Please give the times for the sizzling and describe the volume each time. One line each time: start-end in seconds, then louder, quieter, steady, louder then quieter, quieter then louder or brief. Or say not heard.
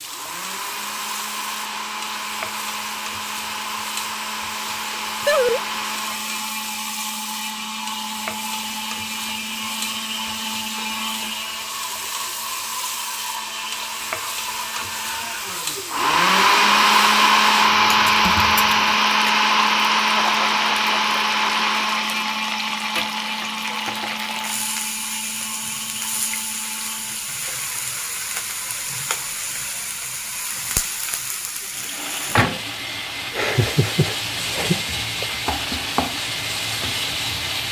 0.0-37.6 louder.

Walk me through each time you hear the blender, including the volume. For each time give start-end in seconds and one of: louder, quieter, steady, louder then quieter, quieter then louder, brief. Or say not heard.
0.0-37.6 louder then quieter.